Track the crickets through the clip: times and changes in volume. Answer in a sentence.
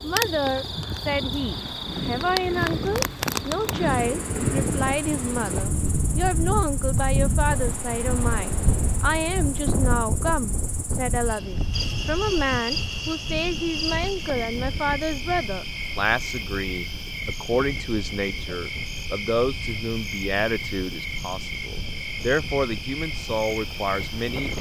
You can hear the crickets from 0.0 to 24.5 s, getting quieter then louder.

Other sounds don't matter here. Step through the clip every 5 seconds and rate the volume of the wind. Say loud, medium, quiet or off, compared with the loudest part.
loud, loud, medium, quiet, quiet.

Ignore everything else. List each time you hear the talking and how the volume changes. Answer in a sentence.
The talking can be heard from 0.0 to 24.5 s, at a steady volume.